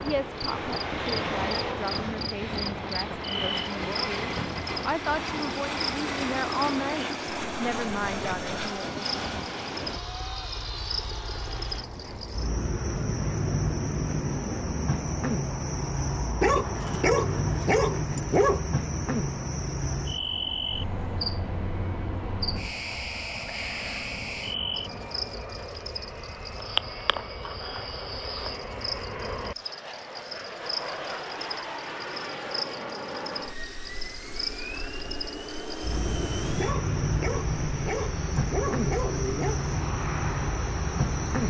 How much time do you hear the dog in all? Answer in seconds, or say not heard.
5 s.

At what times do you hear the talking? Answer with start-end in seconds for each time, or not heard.
0.0-9.2.